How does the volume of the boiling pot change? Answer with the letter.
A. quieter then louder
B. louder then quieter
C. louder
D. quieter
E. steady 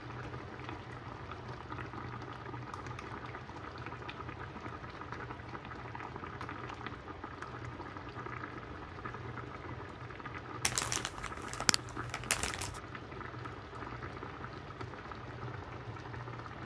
E.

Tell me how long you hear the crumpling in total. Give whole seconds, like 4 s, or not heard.
2 s.